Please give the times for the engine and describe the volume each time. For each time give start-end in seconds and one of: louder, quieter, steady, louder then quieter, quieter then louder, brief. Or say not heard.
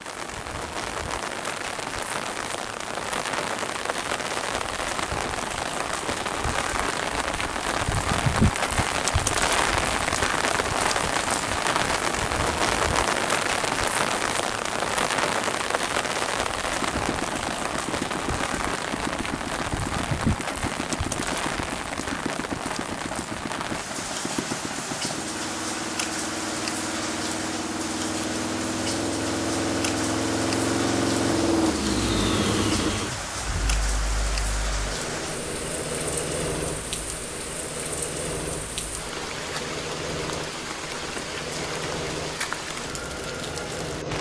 16.6-44.1 louder then quieter.